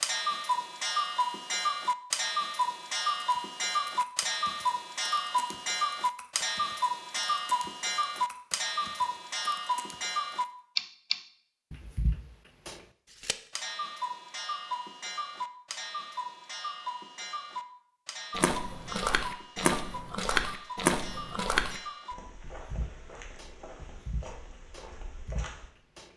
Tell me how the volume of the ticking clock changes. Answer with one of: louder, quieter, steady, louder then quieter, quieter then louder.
quieter.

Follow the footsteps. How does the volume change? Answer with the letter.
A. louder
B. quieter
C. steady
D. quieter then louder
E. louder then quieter
B.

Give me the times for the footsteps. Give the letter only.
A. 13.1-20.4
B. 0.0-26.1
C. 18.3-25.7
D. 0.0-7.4
C.